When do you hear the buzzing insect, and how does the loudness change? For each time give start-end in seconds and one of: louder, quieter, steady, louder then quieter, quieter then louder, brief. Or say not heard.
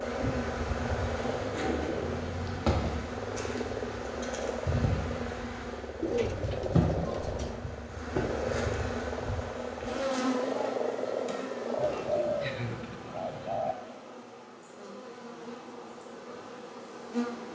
0.0-17.5 quieter.